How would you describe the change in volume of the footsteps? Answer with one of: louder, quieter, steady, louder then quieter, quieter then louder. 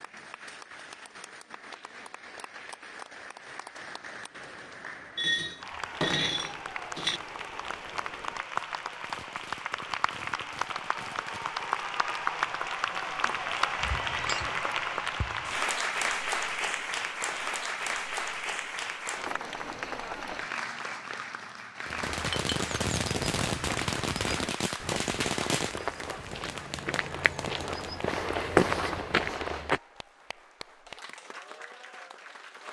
louder.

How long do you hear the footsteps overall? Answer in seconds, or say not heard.
8 s.